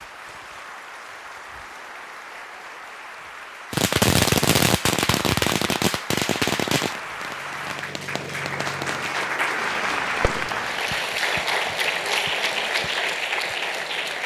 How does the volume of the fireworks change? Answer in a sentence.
The loudness of the fireworks goes down.